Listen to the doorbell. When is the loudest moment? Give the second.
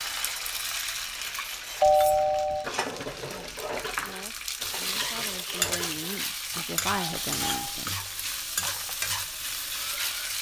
2 s.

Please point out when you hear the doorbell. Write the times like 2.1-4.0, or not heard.
1.8-2.6, 6.8-7.8.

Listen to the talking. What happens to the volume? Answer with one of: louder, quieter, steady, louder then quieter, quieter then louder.
louder.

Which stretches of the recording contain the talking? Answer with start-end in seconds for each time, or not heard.
3.2-8.0.